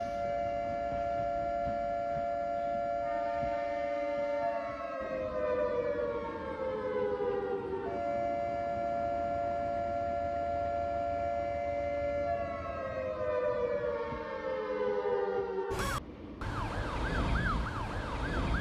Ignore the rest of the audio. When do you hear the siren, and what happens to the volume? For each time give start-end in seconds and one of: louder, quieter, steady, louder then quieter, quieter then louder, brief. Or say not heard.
0.0-18.5 steady.